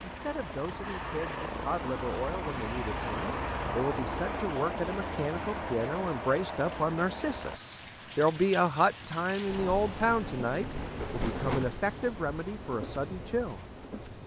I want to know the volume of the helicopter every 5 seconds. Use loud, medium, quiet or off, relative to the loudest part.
loud, loud, off.